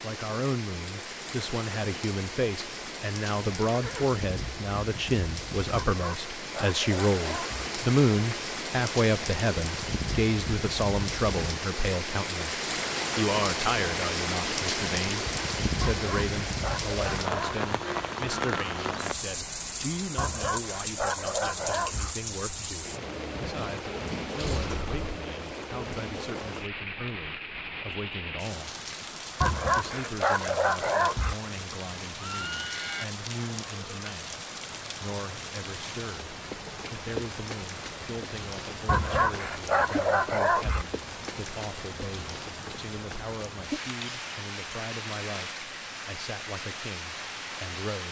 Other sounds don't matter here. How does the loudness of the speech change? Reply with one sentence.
The loudness of the speech goes down.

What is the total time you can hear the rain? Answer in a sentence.
The rain can be heard for 48 seconds in total.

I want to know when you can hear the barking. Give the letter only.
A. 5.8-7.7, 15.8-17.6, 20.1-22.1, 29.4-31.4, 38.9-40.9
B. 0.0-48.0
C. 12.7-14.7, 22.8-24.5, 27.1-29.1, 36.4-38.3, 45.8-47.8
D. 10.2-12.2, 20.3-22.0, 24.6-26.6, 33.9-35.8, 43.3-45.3
A.